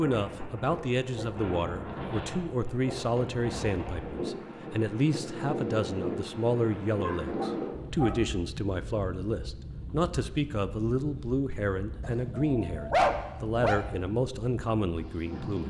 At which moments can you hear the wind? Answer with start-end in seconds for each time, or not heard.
0.0-15.6.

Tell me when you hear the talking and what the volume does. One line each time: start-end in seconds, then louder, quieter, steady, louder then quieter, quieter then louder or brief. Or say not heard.
0.0-15.6 steady.